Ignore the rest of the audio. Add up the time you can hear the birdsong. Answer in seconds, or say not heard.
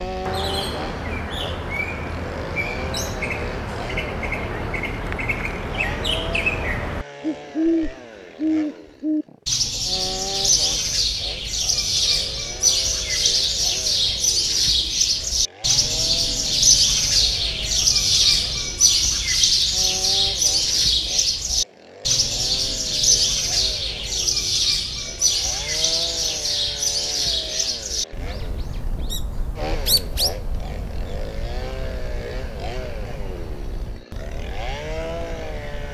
36 s.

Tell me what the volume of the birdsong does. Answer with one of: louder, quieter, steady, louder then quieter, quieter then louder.
louder then quieter.